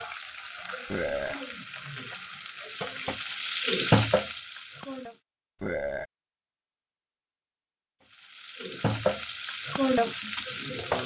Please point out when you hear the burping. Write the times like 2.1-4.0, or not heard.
0.8-1.4, 5.6-6.0.